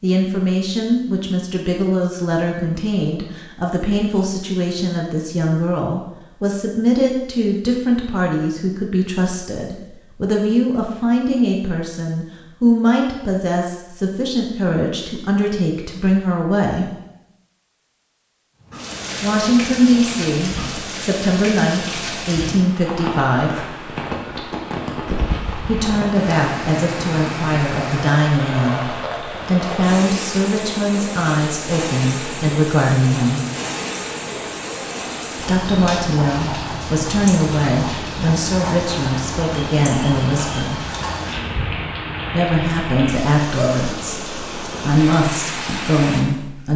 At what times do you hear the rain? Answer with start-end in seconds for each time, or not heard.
18.6-46.7.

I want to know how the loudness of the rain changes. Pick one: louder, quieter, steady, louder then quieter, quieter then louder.
steady.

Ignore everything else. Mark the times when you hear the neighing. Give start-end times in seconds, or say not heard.
not heard.